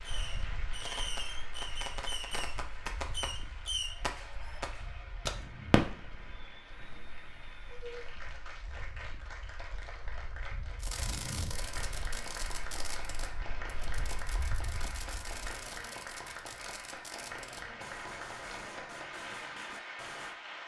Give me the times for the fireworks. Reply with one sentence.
The fireworks can be heard from 0.0 to 8.2 s and from 10.8 to 20.4 s.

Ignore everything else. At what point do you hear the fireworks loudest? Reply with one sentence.
The volume of the fireworks peaks at 6 seconds.